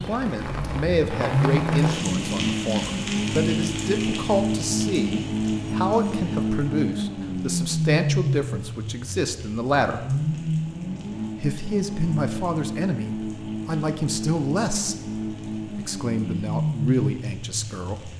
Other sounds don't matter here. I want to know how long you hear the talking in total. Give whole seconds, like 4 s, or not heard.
16 s.